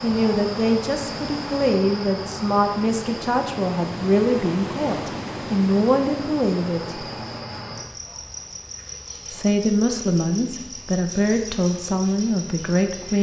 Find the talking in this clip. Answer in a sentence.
The talking can be heard from 0.0 to 7.0 s and from 9.3 to 13.1 s.